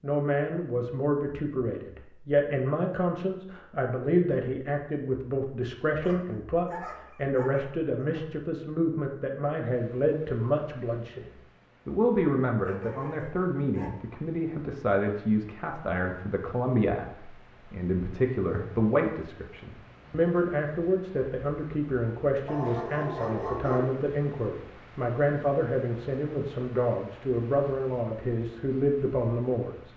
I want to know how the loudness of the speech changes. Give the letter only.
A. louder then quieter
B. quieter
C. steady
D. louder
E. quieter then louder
C.